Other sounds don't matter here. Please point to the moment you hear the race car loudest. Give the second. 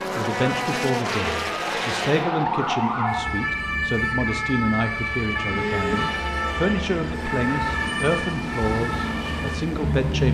1 s.